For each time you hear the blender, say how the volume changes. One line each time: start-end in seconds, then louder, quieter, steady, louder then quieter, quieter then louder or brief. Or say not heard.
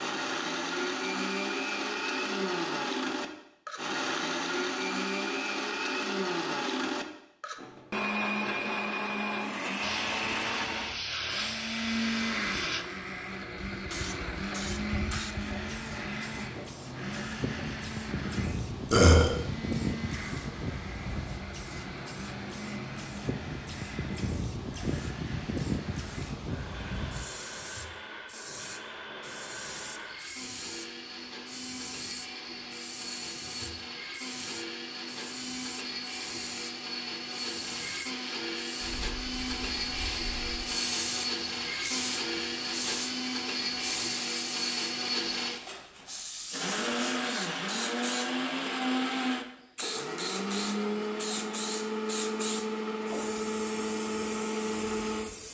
0.0-55.3 quieter then louder.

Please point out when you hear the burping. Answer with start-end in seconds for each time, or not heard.
18.9-19.3.